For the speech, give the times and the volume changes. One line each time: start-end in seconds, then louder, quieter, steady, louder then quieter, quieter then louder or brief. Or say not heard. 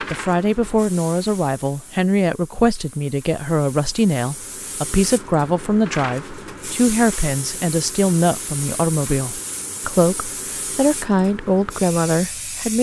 0.0-12.7 steady.